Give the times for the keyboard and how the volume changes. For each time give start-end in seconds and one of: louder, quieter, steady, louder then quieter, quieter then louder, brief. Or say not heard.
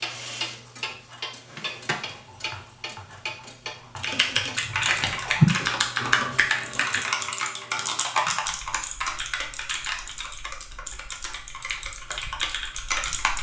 4.0-13.3 quieter.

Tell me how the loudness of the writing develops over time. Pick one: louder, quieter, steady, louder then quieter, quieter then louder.
louder then quieter.